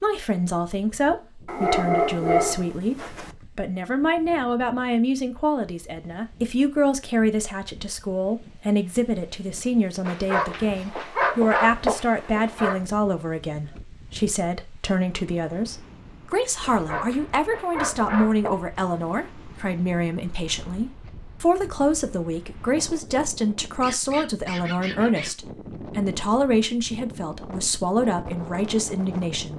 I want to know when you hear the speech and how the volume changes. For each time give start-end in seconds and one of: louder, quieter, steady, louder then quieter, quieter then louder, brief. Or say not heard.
0.0-29.5 steady.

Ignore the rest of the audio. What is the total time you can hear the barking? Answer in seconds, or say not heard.
8 s.